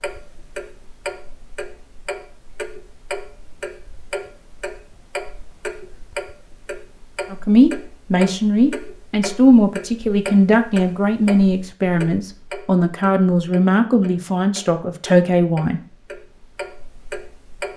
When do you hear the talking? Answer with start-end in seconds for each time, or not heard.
7.3-15.8.